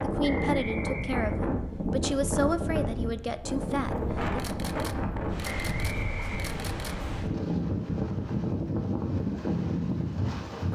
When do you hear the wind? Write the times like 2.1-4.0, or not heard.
0.0-10.7.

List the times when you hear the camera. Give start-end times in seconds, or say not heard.
4.3-7.0.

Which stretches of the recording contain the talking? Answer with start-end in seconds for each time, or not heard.
0.0-4.4.